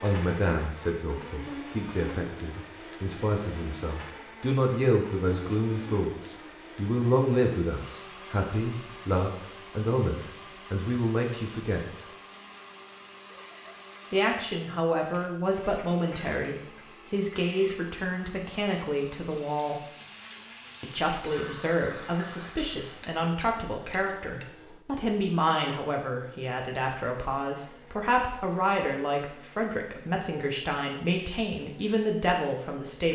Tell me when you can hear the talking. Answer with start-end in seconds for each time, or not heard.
0.0-12.1, 14.1-19.8, 20.8-33.1.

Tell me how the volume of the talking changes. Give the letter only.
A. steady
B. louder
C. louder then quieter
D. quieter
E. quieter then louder
A.